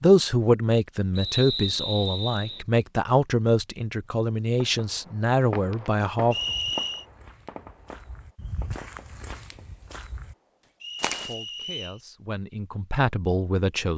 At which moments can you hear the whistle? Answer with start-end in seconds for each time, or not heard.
1.1-2.6, 6.3-7.0, 10.8-12.0.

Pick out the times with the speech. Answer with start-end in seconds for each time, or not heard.
0.0-6.3, 11.1-13.9.